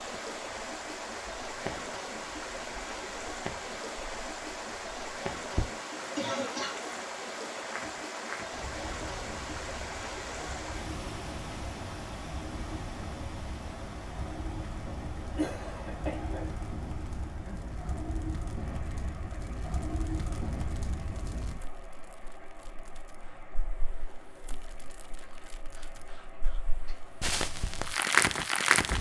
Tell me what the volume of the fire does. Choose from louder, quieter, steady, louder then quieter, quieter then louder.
louder.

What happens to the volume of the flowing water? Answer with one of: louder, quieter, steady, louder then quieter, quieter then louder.
quieter.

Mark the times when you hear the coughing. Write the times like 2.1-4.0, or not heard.
6.2-6.8, 15.3-16.6, 25.2-26.9.